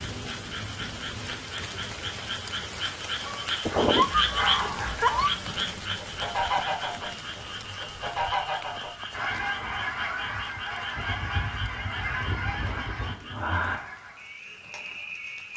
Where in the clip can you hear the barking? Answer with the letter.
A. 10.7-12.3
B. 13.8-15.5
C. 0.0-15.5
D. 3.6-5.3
D.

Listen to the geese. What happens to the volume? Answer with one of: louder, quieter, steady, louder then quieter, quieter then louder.
steady.